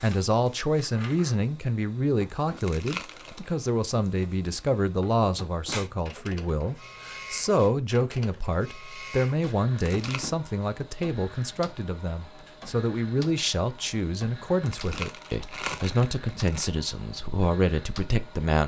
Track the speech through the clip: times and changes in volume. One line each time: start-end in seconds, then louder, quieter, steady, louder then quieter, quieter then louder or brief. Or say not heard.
0.0-18.6 steady.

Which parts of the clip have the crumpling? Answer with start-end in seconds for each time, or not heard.
2.5-3.5, 9.8-10.3, 14.6-16.7.